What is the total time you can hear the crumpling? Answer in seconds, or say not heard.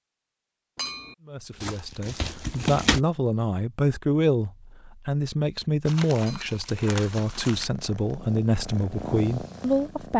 3 s.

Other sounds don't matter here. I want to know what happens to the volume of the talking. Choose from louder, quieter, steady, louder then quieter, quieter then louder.
steady.